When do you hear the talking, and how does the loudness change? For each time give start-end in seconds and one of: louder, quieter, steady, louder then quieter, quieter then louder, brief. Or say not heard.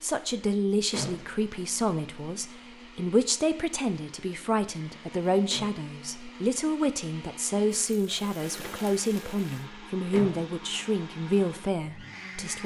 0.0-12.6 steady.